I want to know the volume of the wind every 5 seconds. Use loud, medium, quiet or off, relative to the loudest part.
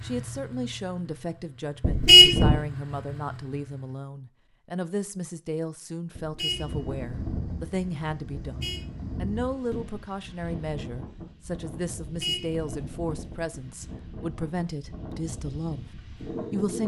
off, loud, medium, loud.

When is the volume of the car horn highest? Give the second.
2 s.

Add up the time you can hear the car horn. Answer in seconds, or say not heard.
5 s.